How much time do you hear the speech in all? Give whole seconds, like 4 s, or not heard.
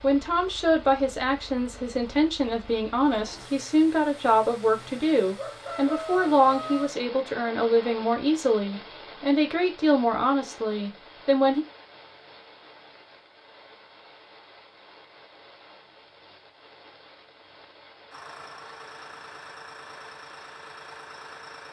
12 s.